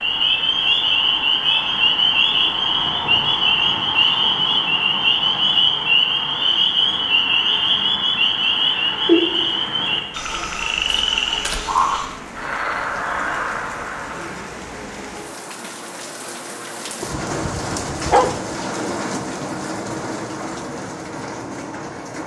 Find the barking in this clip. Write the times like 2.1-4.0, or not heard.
17.0-18.4.